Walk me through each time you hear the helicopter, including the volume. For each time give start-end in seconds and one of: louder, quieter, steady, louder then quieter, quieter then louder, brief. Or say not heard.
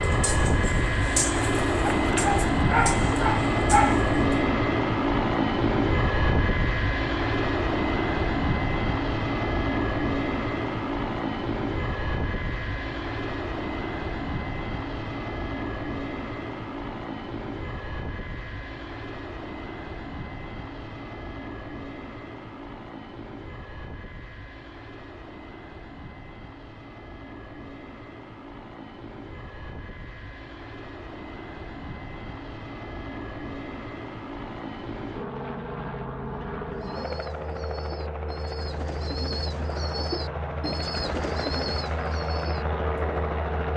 0.0-43.7 quieter then louder.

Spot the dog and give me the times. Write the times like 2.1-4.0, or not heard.
1.9-4.0.